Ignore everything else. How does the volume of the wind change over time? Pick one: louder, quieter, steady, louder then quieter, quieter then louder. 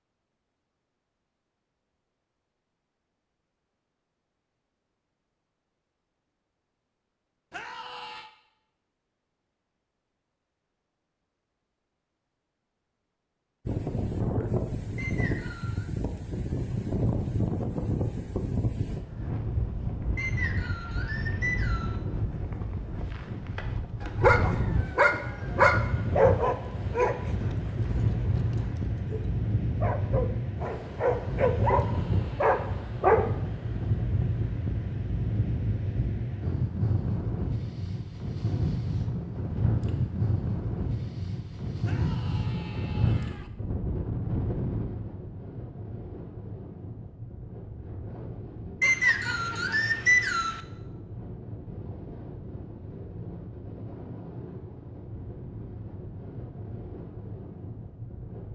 quieter.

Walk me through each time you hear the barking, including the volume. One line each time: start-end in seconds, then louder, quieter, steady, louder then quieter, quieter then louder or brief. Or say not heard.
24.0-33.2 quieter then louder.